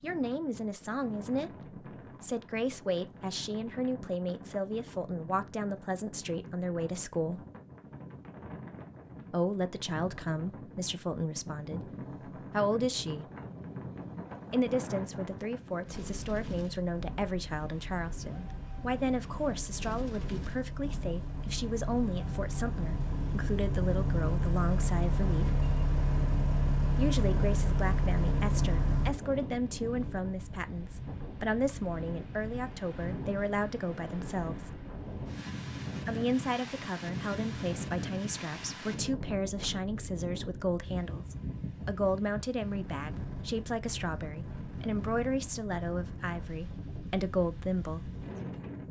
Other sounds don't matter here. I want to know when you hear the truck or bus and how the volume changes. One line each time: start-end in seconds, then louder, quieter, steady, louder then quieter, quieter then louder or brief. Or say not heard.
16.6-29.1 louder.